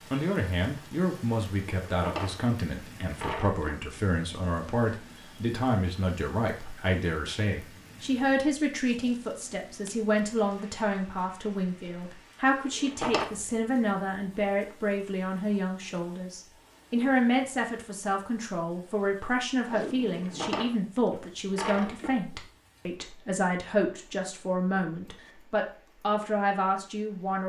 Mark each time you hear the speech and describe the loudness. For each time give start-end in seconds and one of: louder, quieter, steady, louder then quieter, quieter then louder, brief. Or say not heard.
0.1-27.4 steady.